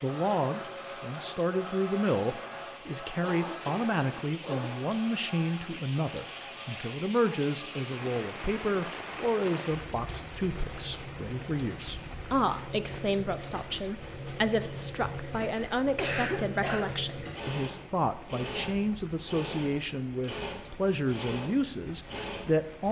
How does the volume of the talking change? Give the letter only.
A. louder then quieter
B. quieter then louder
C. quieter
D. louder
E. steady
E.